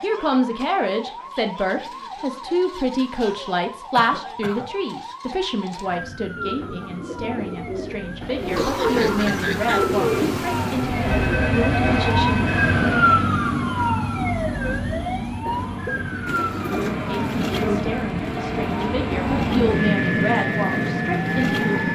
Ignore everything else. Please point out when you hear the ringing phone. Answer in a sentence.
You can hear the ringing phone from 11.1 to 12.7 s.